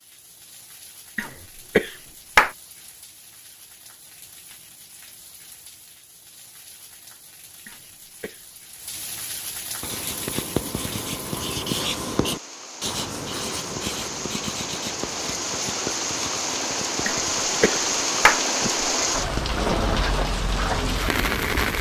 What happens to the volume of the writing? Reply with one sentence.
The loudness of the writing goes down.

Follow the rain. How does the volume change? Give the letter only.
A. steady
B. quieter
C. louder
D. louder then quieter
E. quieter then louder
C.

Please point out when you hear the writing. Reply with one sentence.
The writing can be heard from 9.8 to 19.2 s.